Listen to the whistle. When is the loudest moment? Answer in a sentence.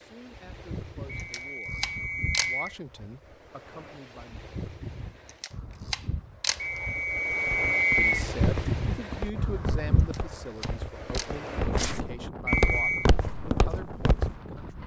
The volume of the whistle peaks at 8 seconds.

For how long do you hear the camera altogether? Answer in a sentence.
You can hear the camera for 4 seconds altogether.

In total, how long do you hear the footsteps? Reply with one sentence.
The footsteps can be heard for 7 seconds in total.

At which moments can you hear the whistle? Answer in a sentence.
You can hear the whistle from 1.3 to 2.8 s, from 6.6 to 8.1 s and from 12.4 to 13.1 s.